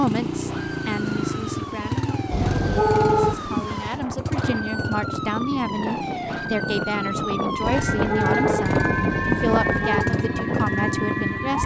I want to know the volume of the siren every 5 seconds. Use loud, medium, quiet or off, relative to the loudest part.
medium, loud, loud.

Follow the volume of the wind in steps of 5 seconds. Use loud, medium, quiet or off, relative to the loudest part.
medium, loud, loud.